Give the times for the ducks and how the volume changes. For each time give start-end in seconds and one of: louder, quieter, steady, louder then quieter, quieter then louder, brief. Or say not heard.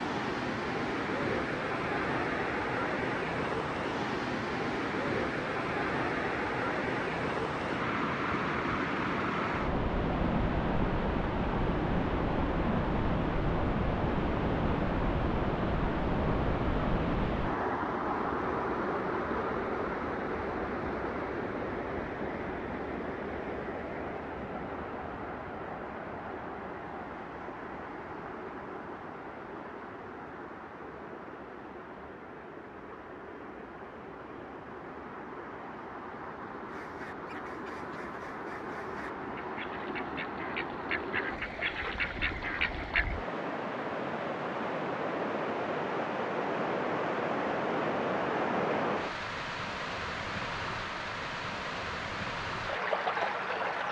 36.6-43.0 louder.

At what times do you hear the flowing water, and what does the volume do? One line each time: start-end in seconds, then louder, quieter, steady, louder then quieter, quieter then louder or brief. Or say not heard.
0.0-53.8 quieter then louder.